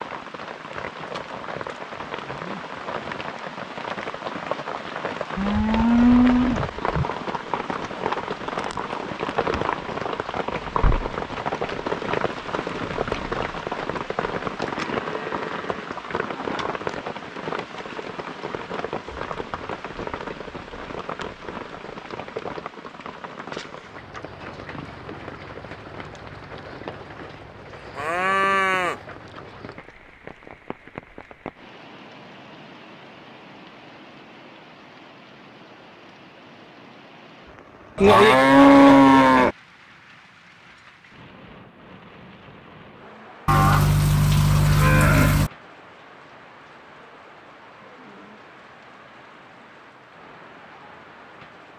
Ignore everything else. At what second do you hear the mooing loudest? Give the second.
39 s.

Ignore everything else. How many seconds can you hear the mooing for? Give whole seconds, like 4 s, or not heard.
8 s.